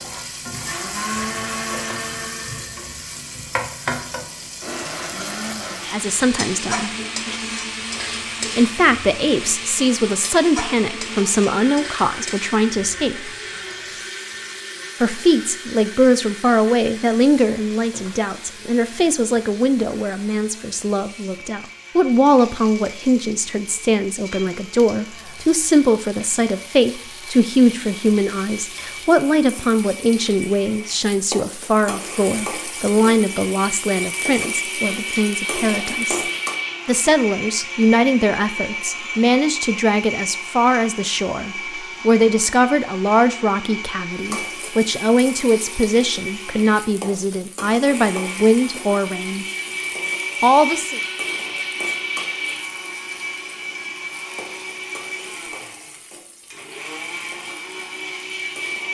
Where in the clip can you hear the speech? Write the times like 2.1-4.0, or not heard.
5.9-6.9, 8.6-13.3, 15.0-36.2, 36.9-49.5, 50.4-51.0.